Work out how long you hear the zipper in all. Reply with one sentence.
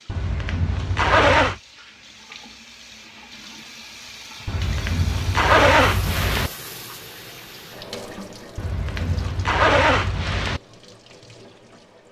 You can hear the zipper for 6 seconds altogether.